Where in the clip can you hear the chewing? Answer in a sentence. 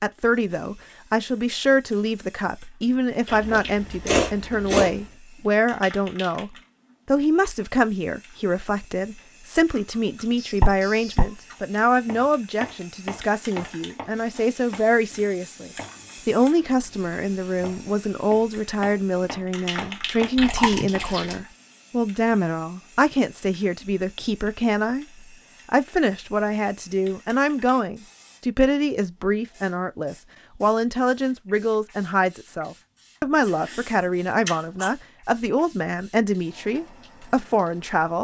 The chewing can be heard from 3.2 to 5.0 s, from 9.8 to 11.6 s, from 20.4 to 21.4 s and from 33.4 to 34.9 s.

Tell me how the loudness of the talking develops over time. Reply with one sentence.
The volume of the talking stays about the same.